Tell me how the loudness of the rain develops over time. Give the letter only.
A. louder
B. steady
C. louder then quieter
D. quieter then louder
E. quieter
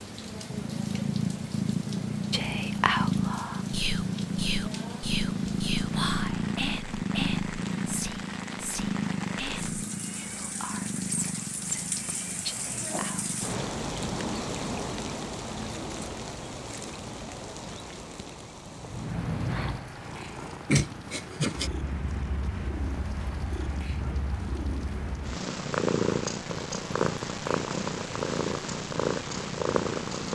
C.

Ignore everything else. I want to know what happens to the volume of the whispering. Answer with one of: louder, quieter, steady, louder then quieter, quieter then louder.
quieter.